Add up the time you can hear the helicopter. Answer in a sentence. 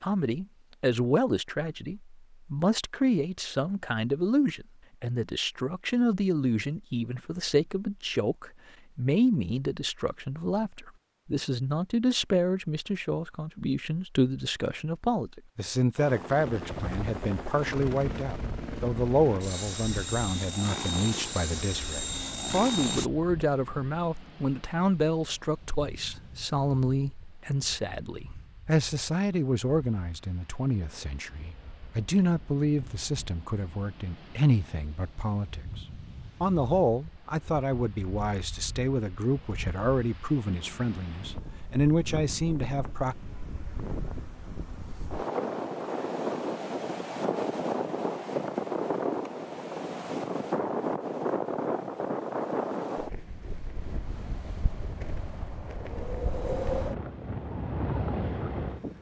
The helicopter can be heard for 7 seconds in total.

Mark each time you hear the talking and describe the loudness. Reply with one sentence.
You can hear the talking from 0.0 to 43.1 s, at a steady volume.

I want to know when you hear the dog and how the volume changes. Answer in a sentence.
You can't hear the dog here.